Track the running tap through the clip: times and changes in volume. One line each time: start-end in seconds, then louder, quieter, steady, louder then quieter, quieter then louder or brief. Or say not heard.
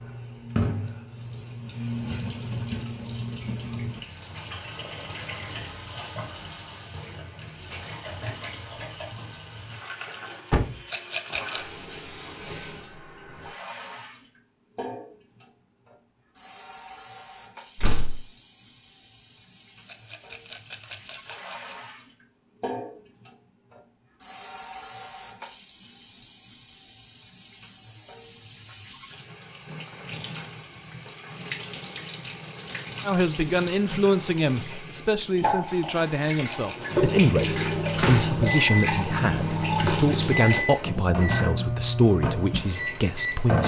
0.0-43.6 quieter then louder.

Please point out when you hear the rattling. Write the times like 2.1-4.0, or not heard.
10.9-11.6, 19.9-21.8, 36.2-36.9.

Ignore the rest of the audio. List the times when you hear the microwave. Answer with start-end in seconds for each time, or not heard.
36.7-43.5.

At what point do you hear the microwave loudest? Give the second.
40 s.